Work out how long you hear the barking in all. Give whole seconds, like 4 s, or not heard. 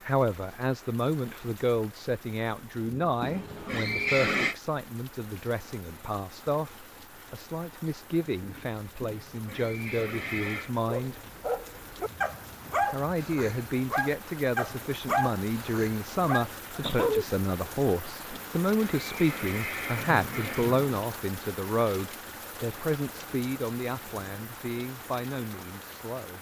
7 s.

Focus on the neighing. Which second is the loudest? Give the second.
4 s.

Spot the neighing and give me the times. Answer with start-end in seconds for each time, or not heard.
3.2-4.5, 9.0-10.7, 18.3-20.9.